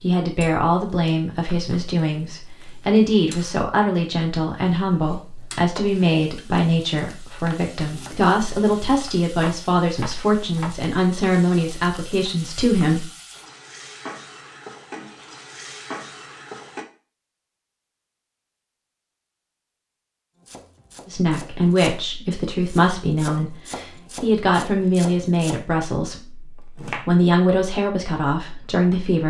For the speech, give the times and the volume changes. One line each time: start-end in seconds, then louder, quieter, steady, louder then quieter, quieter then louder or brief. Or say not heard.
0.0-13.1 steady
21.1-29.2 steady.